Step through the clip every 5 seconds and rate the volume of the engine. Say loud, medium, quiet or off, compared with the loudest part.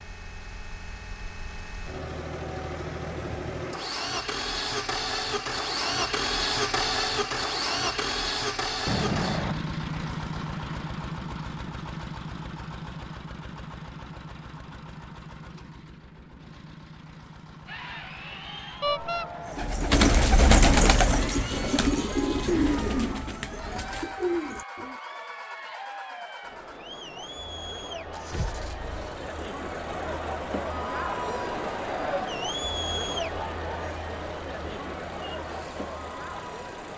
medium, loud, medium, quiet, quiet, quiet, quiet, quiet.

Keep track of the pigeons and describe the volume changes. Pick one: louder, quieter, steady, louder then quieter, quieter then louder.
quieter.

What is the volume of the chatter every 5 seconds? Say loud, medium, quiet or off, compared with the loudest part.
off, off, off, medium, medium, medium, loud, medium.